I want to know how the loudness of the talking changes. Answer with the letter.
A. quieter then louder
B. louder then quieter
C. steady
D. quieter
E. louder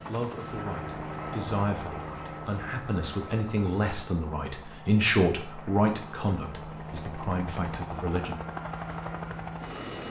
B.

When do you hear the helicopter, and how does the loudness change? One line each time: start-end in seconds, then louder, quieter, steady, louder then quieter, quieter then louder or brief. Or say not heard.
0.0-10.0 quieter then louder.